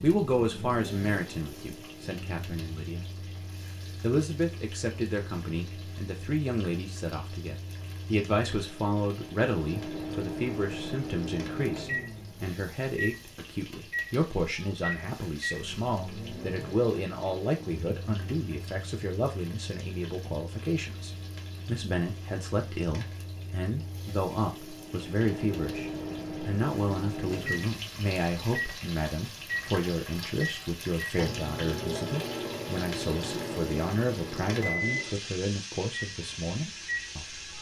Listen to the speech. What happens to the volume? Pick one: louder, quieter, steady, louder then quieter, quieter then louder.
steady.